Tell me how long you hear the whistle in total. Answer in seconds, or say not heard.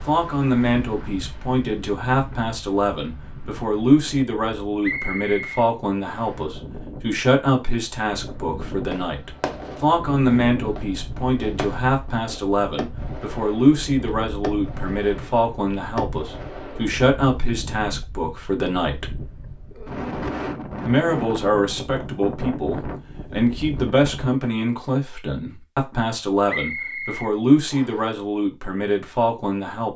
3 s.